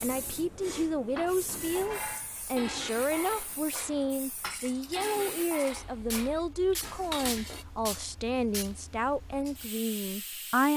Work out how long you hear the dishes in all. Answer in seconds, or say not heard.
7 s.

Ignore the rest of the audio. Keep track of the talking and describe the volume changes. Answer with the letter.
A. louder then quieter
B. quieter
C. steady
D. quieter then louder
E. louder
C.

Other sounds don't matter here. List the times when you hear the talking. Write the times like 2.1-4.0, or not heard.
0.0-10.7.